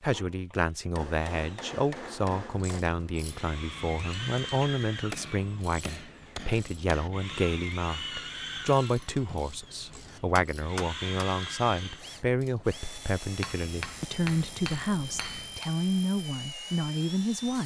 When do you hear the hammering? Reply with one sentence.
The hammering can be heard from 0.9 to 2.9 s, from 5.1 to 7.1 s, from 9.7 to 11.2 s and from 13.4 to 15.7 s.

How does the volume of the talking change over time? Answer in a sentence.
The volume of the talking stays about the same.